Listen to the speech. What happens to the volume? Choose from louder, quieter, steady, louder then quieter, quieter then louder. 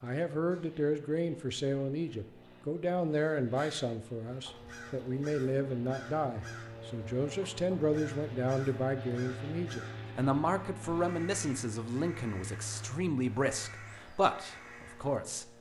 steady.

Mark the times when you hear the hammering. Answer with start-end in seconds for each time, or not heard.
not heard.